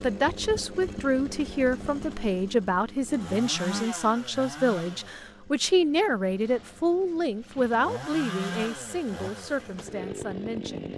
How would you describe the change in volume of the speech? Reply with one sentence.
The loudness of the speech goes down.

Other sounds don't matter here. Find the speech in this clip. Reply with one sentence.
The speech can be heard from 0.0 to 10.9 s.